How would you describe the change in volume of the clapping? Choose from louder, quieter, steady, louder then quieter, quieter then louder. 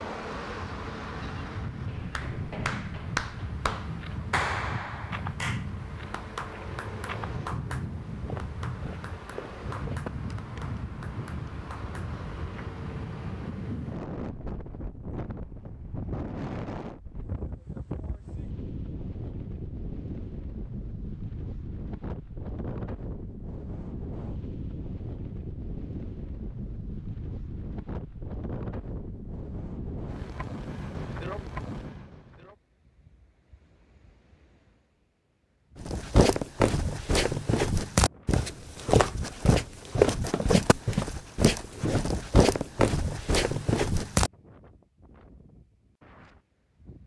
quieter.